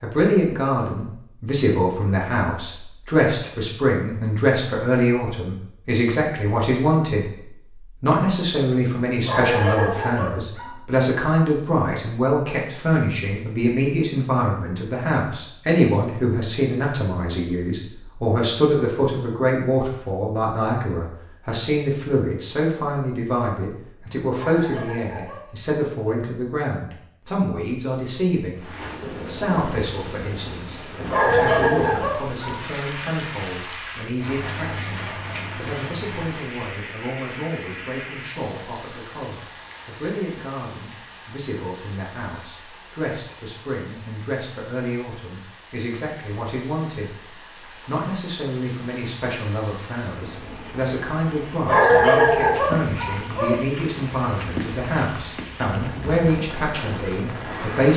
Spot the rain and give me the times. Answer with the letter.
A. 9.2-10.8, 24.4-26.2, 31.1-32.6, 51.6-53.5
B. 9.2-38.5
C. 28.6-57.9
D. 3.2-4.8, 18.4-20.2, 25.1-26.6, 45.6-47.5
C.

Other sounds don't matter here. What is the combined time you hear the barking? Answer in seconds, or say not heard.
7 s.